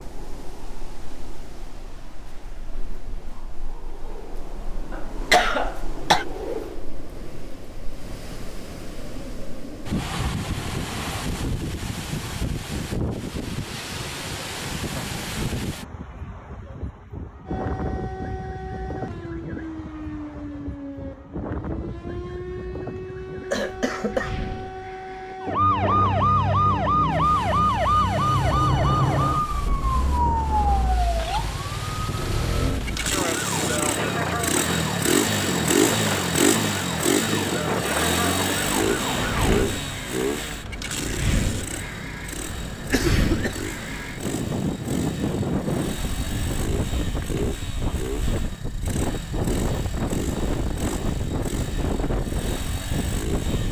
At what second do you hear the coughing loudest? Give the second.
5 s.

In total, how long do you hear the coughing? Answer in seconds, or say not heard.
3 s.